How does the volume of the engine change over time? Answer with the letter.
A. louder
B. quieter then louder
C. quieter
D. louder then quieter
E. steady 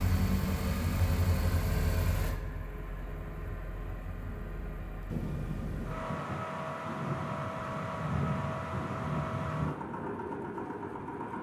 B.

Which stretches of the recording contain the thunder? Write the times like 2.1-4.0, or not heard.
5.1-9.8.